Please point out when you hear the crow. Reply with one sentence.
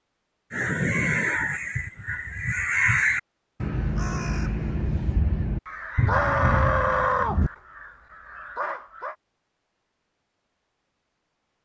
You can hear the crow from 0.5 to 9.2 s.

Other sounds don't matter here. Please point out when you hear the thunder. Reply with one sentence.
The thunder can be heard from 6.0 to 7.5 s.